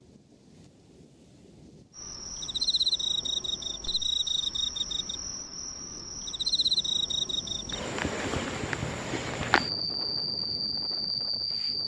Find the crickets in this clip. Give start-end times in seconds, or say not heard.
1.9-11.8.